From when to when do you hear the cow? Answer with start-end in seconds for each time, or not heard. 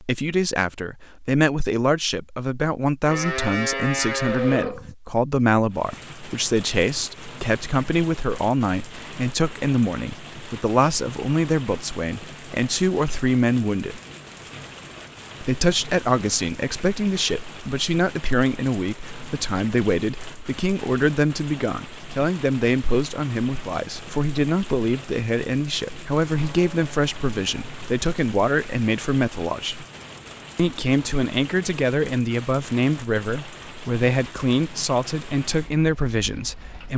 3.0-5.0, 26.2-27.7.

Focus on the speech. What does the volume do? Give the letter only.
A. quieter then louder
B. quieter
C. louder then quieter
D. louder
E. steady
E.